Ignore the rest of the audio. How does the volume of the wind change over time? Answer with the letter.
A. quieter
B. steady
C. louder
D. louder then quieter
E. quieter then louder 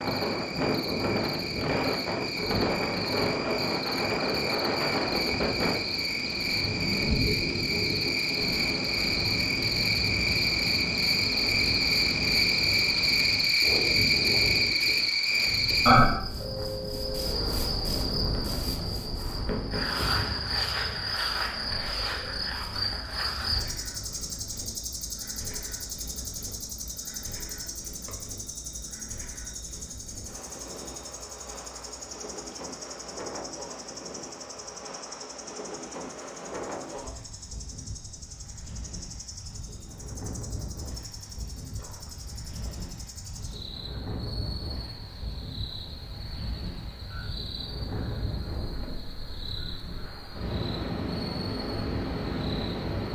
E.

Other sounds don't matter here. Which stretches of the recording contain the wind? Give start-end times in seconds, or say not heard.
0.0-53.1.